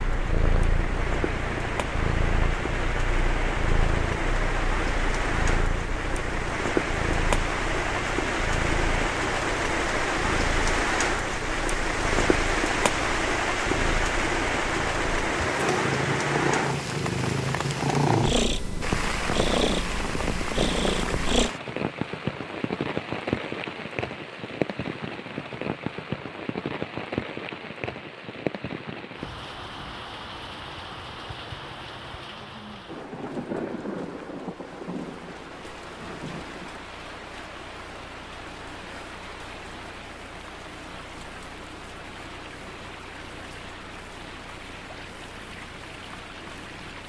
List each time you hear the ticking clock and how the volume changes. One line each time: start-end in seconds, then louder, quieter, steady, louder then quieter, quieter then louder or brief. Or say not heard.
not heard.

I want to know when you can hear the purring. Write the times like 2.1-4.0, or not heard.
0.0-21.5.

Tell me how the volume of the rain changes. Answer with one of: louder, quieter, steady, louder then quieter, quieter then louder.
quieter.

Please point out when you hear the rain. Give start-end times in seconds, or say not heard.
0.0-47.0.